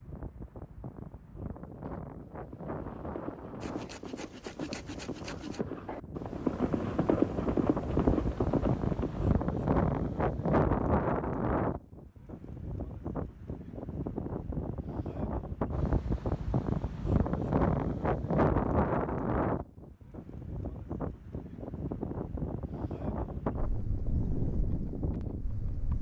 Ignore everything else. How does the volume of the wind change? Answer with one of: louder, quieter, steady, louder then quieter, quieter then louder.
louder then quieter.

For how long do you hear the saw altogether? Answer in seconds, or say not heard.
2 s.